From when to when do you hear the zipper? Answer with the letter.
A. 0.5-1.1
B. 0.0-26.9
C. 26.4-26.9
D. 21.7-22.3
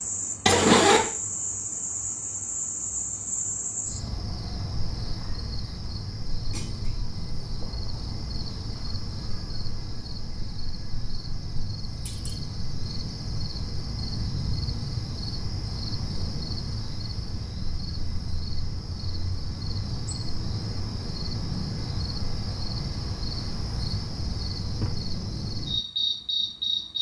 A.